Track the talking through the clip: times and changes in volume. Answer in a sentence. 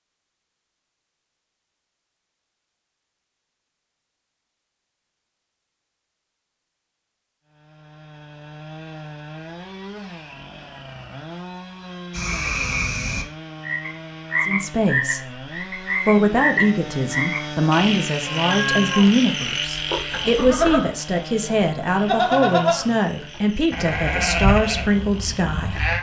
The talking can be heard briefly from 14.4 to 15.4 s; and from 16.1 to 25.8 s, at a steady volume.